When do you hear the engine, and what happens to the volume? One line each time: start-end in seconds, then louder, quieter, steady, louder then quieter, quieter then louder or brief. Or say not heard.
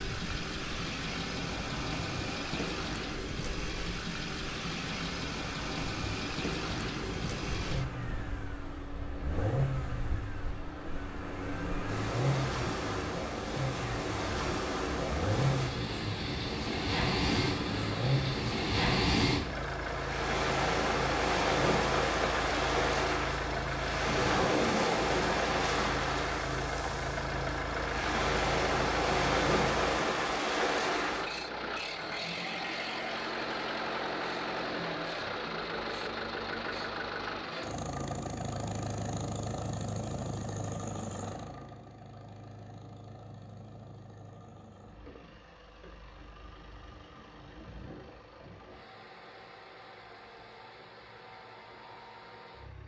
0.0-52.8 quieter.